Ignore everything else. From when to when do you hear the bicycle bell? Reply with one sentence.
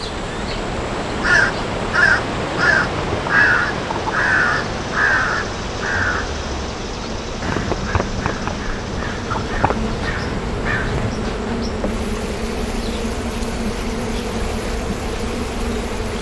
The bicycle bell can't be heard in this clip.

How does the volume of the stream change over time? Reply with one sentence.
The volume of the stream goes down.